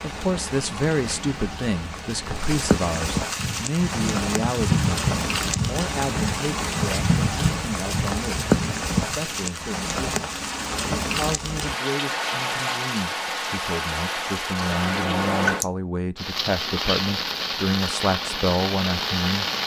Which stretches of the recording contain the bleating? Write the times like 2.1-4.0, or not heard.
3.3-9.2.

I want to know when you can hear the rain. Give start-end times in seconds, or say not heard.
0.0-19.6.